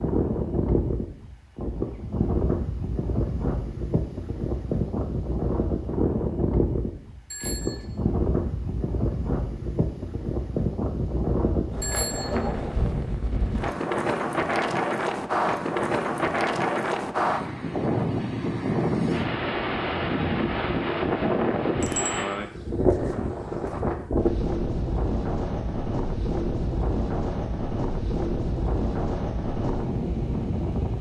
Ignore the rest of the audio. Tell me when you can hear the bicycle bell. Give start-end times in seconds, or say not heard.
7.3-7.8, 11.8-12.4, 21.8-22.3.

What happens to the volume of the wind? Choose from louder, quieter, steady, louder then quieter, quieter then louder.
steady.